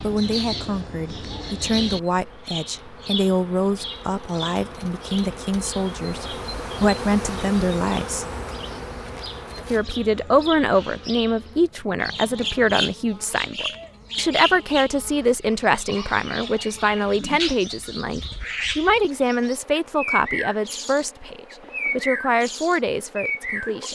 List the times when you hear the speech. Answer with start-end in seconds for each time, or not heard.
0.0-8.2, 9.7-23.8.